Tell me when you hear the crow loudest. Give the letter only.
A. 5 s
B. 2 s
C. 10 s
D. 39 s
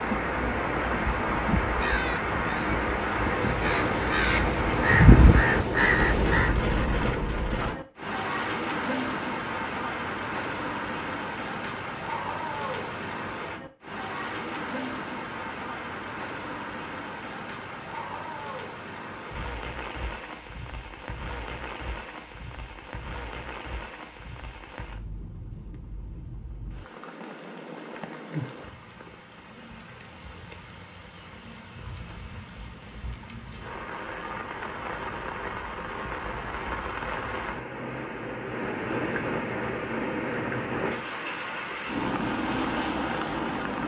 A.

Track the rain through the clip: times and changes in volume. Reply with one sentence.
You can hear the rain from 0.0 to 43.8 s, getting quieter then louder.